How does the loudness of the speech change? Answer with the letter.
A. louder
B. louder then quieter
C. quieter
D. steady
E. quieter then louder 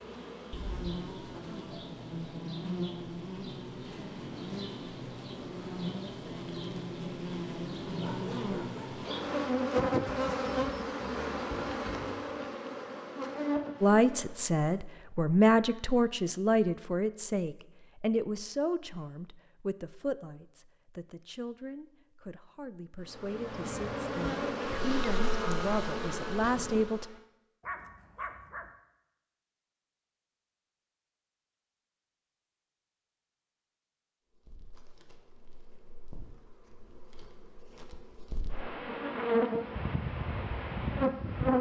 E.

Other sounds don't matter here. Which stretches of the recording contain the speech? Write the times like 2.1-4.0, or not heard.
13.8-27.1.